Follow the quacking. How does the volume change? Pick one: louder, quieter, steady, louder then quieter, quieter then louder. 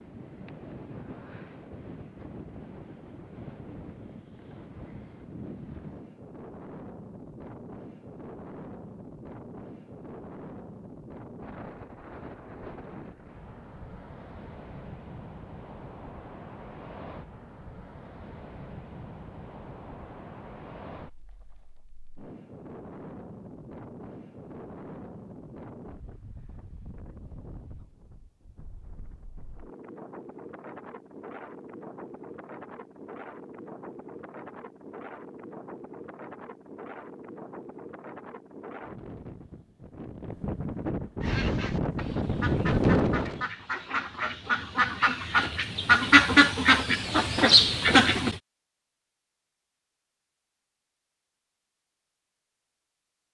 louder.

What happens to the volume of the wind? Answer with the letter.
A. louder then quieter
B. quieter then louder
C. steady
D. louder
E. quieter
D.